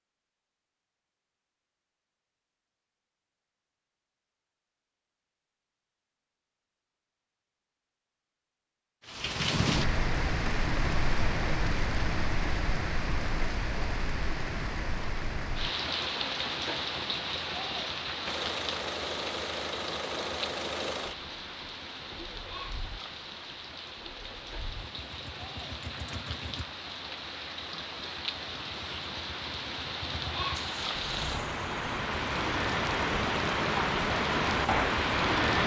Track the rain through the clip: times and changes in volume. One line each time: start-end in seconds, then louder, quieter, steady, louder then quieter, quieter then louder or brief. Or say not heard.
9.1-35.6 quieter then louder.